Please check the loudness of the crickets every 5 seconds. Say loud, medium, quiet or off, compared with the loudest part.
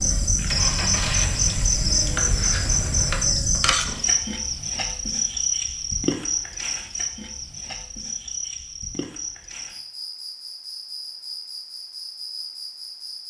loud, medium, quiet.